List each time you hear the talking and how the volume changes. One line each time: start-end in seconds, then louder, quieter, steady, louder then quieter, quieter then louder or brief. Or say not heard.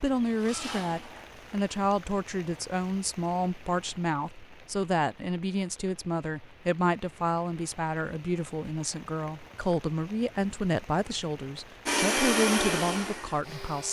0.0-13.8 steady.